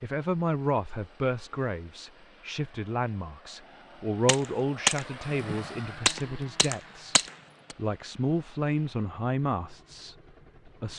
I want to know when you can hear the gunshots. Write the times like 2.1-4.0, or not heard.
4.2-7.8.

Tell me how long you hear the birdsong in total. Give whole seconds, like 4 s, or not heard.
not heard.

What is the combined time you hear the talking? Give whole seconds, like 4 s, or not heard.
11 s.